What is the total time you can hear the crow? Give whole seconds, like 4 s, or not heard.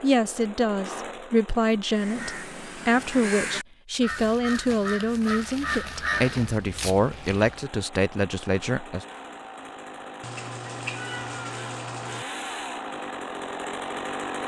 6 s.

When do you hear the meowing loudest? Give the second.
11 s.